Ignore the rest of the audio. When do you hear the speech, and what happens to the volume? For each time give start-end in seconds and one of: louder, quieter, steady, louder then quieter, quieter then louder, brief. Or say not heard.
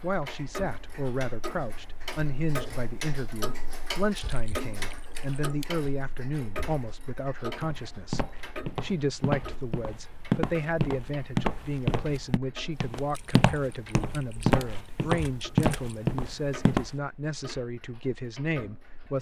0.0-19.1 steady.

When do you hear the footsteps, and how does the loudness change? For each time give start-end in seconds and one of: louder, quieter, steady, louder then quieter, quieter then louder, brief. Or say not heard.
7.6-16.9 louder.